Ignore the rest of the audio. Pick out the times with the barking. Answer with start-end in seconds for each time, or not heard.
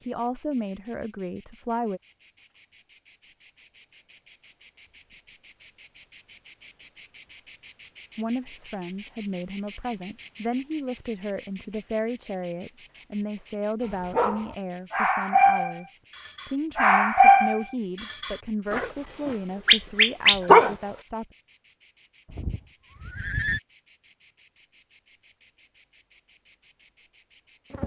13.8-20.8.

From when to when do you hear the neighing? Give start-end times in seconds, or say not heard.
22.2-23.6.